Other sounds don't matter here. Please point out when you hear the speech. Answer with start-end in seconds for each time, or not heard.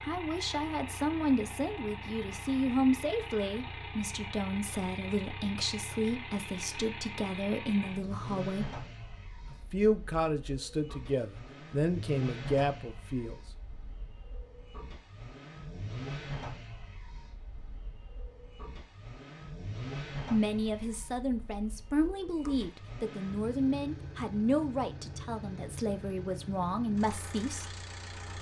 0.0-8.8, 9.5-13.4, 20.3-27.6.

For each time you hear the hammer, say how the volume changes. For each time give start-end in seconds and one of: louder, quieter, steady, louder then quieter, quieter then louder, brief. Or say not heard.
not heard.